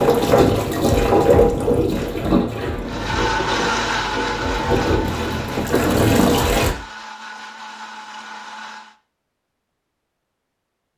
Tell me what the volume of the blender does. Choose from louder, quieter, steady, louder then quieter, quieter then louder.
quieter.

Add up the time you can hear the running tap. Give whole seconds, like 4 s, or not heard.
7 s.